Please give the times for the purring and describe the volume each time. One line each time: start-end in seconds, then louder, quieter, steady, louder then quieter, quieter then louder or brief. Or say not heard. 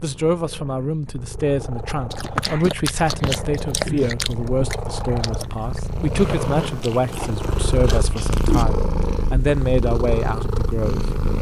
0.0-11.3 louder.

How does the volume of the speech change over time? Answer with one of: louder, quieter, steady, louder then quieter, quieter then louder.
steady.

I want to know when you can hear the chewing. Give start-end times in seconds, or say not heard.
2.1-8.7.